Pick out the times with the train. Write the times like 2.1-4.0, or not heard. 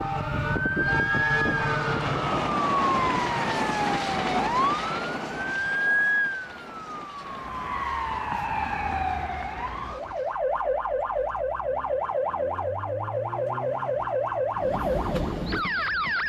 0.0-10.4, 14.5-16.2.